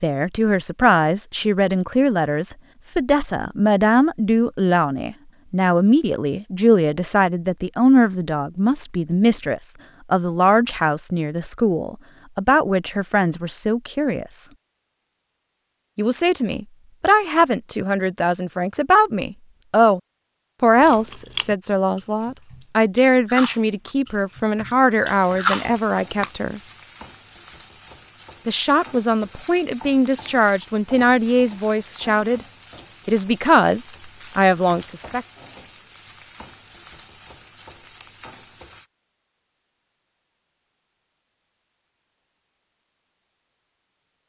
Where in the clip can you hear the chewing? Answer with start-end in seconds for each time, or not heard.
20.8-26.3.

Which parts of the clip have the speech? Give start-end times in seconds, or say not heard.
0.0-14.4, 15.9-20.0, 20.6-26.6, 28.4-32.4, 33.0-35.2.